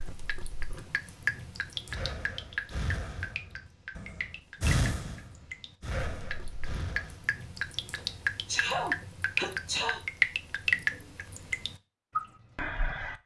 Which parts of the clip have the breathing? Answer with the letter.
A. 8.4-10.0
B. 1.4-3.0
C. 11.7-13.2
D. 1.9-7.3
D.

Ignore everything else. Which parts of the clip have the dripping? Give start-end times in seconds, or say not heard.
0.0-13.2.